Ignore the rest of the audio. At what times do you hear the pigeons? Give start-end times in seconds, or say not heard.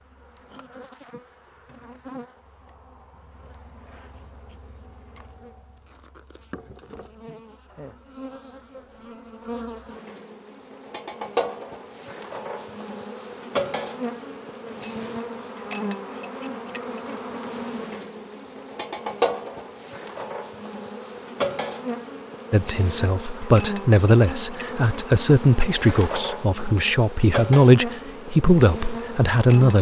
not heard.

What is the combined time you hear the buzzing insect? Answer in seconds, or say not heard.
30 s.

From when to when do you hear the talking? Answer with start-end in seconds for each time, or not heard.
22.5-29.7.